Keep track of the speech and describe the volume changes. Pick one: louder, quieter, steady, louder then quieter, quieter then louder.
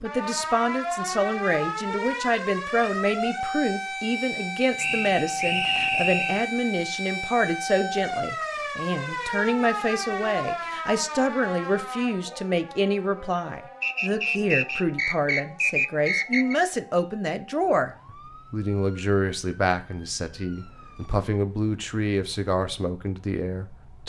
steady.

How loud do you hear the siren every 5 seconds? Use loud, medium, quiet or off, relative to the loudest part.
loud, loud, medium, quiet, quiet.